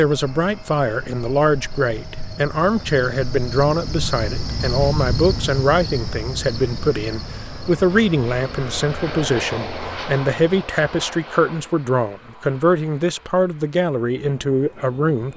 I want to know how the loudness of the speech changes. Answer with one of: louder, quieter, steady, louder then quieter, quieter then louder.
steady.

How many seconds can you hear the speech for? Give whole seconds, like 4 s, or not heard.
15 s.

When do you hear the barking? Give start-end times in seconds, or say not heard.
not heard.